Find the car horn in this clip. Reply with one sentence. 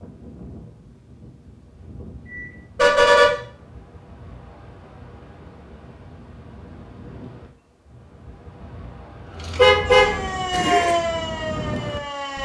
You can hear the car horn from 2.2 to 3.3 s and from 9.6 to 10.9 s.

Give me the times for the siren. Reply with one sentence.
The siren can be heard from 9.3 to 12.4 s.